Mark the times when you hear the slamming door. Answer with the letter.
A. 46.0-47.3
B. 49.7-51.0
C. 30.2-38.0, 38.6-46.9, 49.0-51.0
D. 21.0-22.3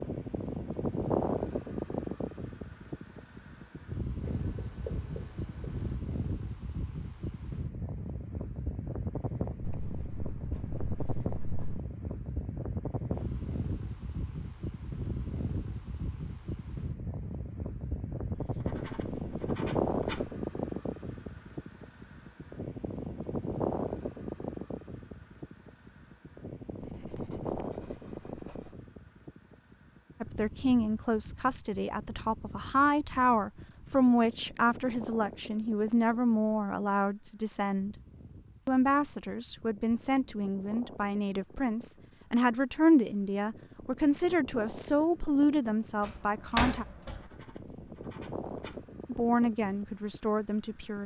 A.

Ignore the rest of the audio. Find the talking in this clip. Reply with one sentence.
You can hear the talking from 30.2 to 38.0 s, from 38.6 to 46.9 s and from 49.0 to 51.0 s.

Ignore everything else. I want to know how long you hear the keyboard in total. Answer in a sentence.
The keyboard can't be heard in this clip.